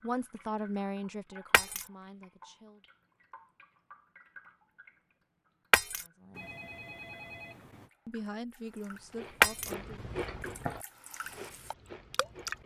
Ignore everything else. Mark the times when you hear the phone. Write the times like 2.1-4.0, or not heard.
6.3-7.9.